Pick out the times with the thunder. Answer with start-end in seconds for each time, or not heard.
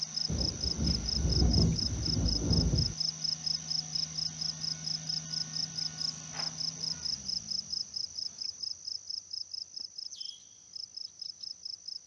0.2-3.0.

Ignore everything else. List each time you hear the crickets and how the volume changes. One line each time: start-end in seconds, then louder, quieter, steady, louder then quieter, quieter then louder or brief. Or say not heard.
0.0-12.0 quieter.